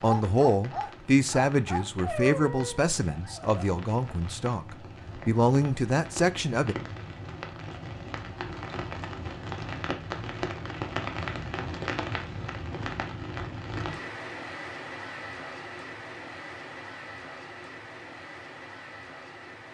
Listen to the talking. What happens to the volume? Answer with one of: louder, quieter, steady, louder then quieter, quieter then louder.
quieter then louder.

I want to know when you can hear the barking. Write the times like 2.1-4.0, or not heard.
0.0-3.6.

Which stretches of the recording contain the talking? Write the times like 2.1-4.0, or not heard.
0.0-6.8.